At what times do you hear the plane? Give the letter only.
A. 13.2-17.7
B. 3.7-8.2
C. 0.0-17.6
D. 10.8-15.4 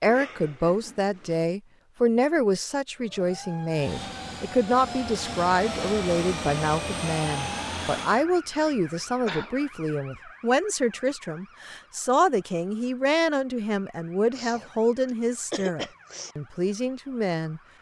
B.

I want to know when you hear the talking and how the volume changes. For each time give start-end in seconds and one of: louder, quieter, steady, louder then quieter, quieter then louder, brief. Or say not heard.
0.0-17.6 steady.